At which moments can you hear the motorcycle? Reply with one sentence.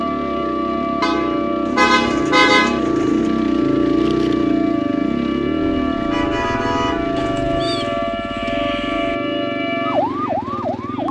The motorcycle can be heard from 0.0 to 11.0 s.